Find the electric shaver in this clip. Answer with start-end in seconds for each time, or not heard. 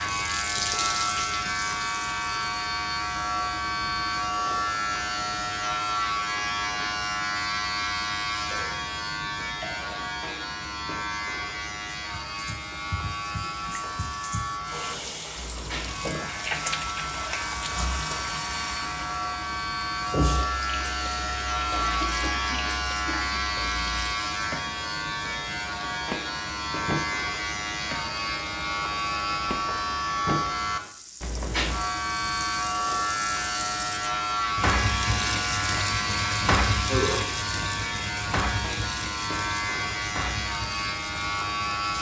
0.0-41.9.